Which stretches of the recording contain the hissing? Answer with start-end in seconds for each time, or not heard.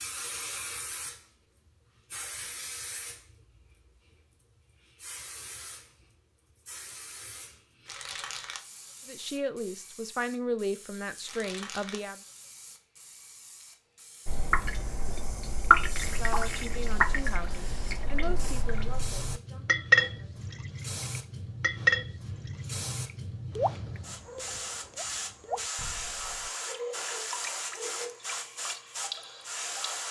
0.0-30.0.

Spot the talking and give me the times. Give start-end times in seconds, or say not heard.
9.1-12.2, 16.0-20.4.